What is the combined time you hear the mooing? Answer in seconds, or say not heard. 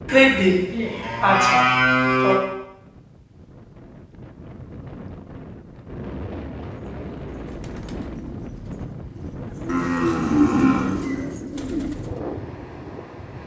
4 s.